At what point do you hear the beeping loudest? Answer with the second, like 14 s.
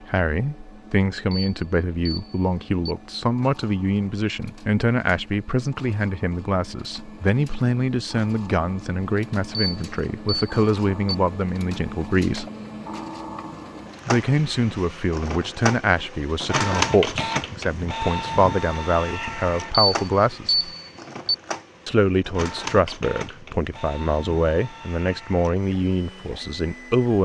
20 s.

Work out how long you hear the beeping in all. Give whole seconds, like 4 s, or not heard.
5 s.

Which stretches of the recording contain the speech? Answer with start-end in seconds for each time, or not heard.
0.0-12.4, 14.1-20.7, 21.9-27.2.